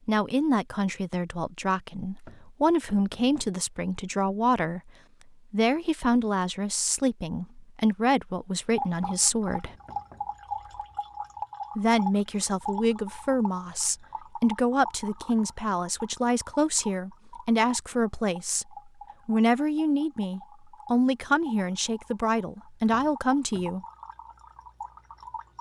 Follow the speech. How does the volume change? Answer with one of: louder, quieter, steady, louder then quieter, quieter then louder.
steady.